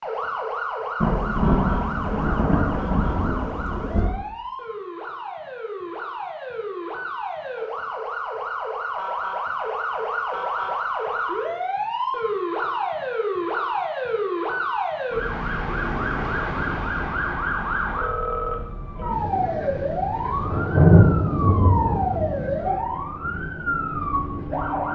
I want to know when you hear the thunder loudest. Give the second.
21 s.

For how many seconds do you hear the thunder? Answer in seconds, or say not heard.
7 s.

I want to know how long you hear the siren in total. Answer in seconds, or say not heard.
25 s.